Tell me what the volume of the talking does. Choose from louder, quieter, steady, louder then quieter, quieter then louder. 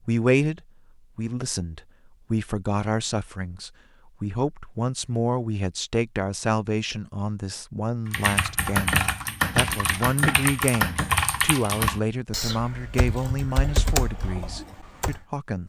steady.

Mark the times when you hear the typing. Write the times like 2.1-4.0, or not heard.
8.1-15.2.